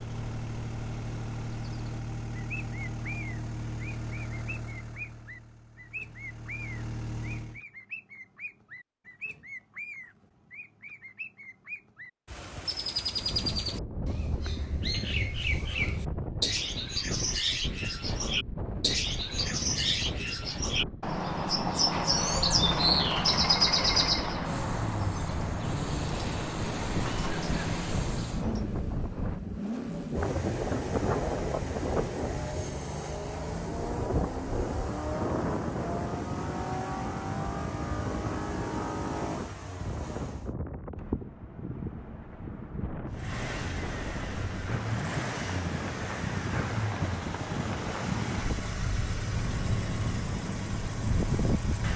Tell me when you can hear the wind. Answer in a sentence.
You can hear the wind from 13.2 to 51.9 s.